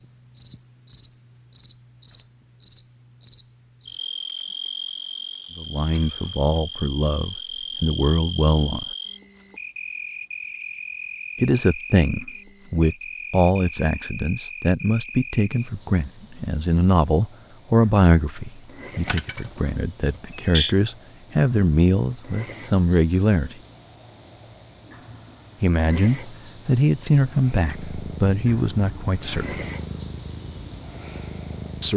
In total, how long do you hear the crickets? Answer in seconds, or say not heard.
32 s.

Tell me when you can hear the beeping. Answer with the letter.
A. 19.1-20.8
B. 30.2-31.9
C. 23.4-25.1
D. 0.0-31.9
A.